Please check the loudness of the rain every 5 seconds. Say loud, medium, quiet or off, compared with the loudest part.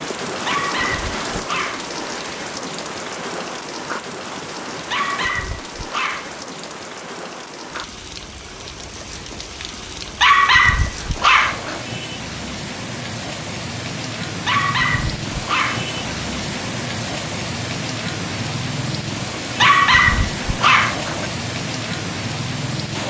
loud, medium, loud, loud, loud.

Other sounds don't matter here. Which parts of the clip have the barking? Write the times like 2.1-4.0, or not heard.
0.5-1.9, 4.9-6.4, 10.2-11.8, 14.4-15.9, 19.6-21.2.